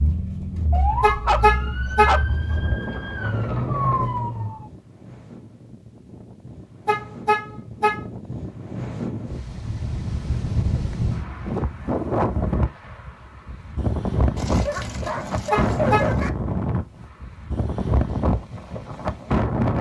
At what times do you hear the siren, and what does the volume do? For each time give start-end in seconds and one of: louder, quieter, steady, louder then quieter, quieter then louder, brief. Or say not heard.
0.0-4.7 quieter then louder.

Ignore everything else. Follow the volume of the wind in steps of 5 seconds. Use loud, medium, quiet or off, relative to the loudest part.
quiet, medium, loud, loud.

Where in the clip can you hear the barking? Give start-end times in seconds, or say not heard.
0.8-2.5, 14.3-16.3.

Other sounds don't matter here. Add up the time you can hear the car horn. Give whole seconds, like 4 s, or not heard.
3 s.